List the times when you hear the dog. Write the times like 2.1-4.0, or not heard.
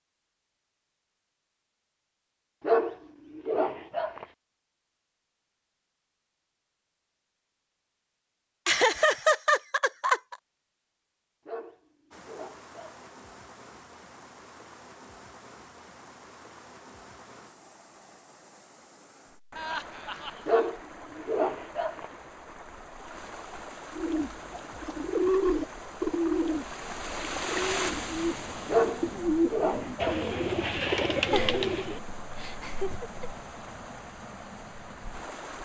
2.6-4.2, 11.4-13.1, 20.4-22.1, 28.6-30.3.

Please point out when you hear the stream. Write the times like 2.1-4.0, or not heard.
12.1-35.6.